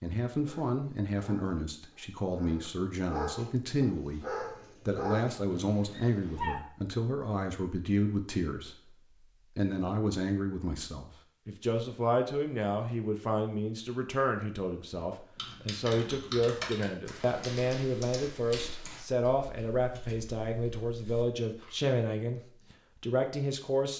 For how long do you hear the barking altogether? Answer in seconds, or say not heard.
6 s.